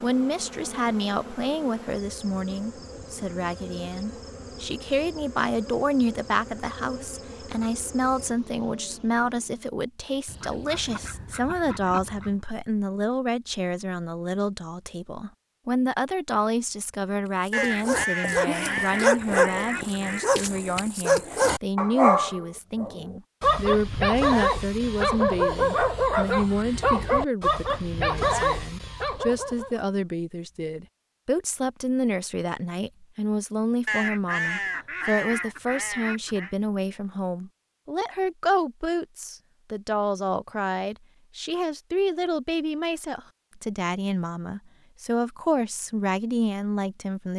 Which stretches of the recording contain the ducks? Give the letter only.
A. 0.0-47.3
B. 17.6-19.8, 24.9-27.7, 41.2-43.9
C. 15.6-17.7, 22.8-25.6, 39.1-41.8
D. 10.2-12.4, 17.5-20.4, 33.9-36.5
D.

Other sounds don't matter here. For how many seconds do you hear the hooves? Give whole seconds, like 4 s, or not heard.
not heard.